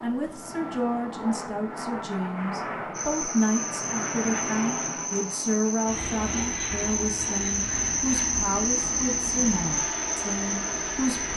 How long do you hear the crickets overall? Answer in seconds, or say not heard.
8 s.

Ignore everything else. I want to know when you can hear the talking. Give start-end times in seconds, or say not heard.
0.0-11.3.